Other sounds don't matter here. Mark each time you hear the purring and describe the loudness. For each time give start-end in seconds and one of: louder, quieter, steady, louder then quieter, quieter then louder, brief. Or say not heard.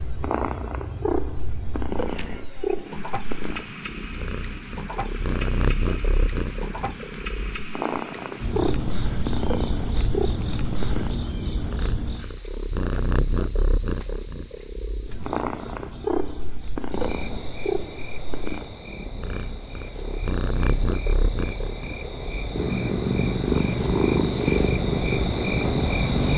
0.0-26.3 louder.